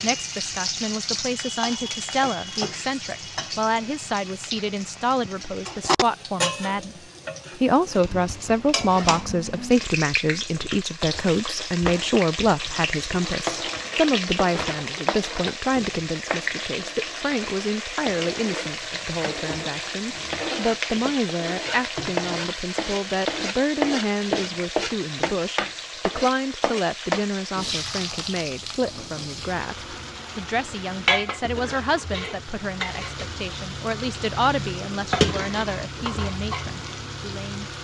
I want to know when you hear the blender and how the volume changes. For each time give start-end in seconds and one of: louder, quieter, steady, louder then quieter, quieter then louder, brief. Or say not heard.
not heard.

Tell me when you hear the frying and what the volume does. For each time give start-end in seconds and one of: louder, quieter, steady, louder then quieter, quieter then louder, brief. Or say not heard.
0.0-37.7 steady.